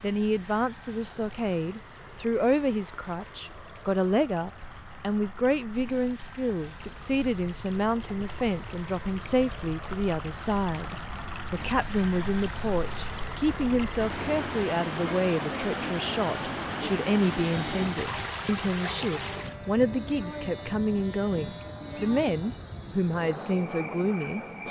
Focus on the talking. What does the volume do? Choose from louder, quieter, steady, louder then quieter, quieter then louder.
steady.